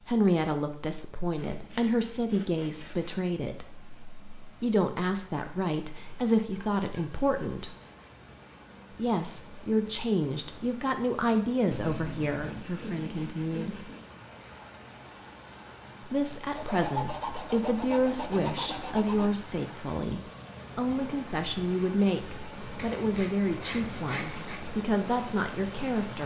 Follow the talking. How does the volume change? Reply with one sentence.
The loudness of the talking stays about the same.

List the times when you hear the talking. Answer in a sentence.
You can hear the talking from 0.1 to 7.8 s, from 8.9 to 13.9 s and from 16.1 to 26.2 s.